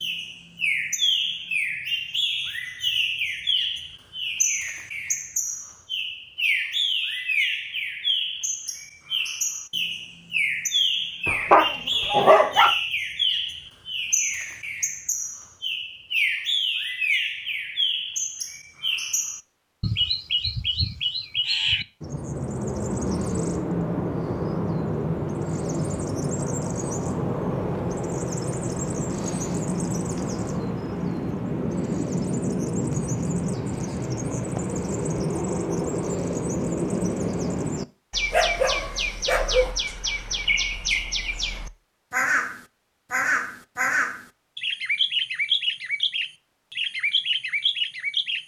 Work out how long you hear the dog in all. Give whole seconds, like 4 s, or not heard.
3 s.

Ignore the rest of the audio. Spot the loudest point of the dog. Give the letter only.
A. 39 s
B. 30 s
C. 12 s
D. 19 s
C.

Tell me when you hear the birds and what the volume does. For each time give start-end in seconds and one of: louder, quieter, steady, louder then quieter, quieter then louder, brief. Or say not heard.
0.0-48.4 steady.